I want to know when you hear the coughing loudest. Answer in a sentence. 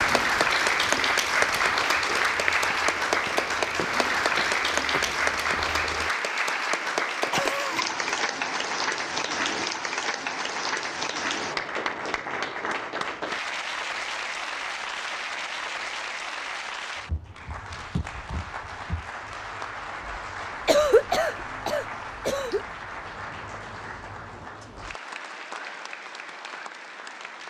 The loudest moment of the coughing is at 21 seconds.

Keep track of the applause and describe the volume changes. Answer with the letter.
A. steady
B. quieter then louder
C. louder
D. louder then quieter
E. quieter
E.